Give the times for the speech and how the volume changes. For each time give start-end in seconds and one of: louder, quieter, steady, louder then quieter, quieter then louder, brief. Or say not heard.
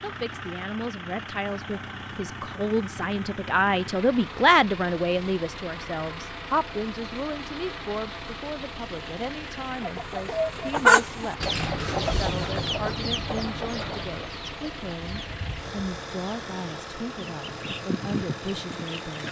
0.0-19.2 quieter.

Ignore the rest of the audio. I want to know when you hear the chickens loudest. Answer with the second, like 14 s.
11 s.